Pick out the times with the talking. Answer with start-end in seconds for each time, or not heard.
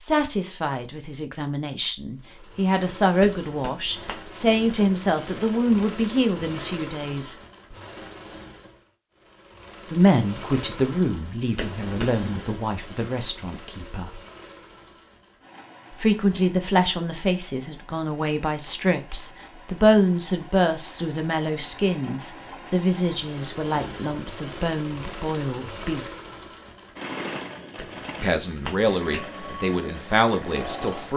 0.0-7.3, 9.9-14.2, 16.0-26.1, 28.2-31.1.